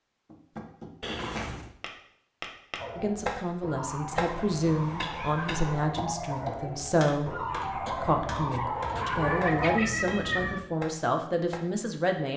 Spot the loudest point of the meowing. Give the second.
10 s.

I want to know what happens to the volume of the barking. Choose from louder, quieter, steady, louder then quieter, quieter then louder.
louder.